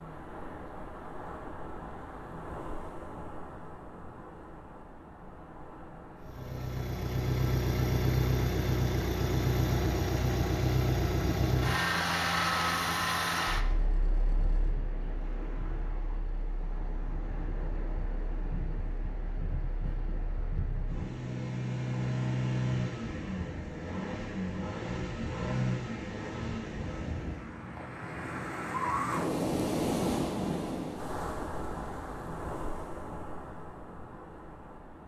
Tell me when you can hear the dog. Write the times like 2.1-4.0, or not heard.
not heard.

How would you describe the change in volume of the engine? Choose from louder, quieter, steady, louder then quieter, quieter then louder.
quieter then louder.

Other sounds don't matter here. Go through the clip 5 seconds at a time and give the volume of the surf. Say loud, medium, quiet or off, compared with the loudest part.
medium, quiet, medium, medium, medium, loud, loud.